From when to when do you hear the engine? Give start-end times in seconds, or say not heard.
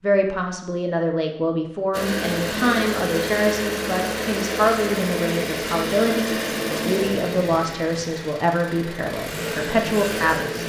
1.9-10.6.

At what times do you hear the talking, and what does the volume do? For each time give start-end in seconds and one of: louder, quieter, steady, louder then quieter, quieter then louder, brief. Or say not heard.
0.0-10.6 steady.